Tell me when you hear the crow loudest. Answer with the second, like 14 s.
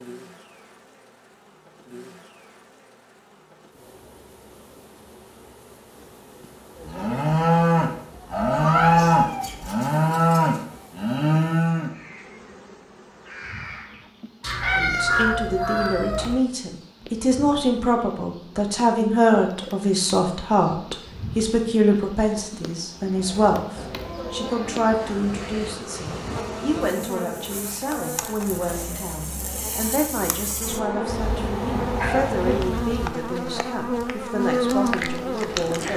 15 s.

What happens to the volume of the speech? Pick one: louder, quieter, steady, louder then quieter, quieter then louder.
quieter.